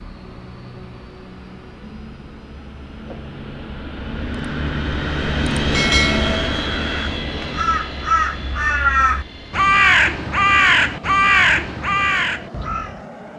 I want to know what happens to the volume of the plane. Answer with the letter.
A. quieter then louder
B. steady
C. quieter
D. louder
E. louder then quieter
E.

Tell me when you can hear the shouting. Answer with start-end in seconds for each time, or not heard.
not heard.